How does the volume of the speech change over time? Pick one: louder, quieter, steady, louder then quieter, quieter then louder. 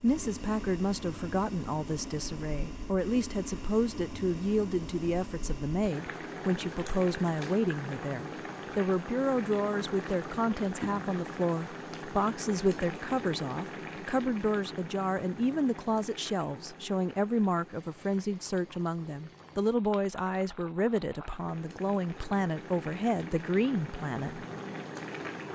steady.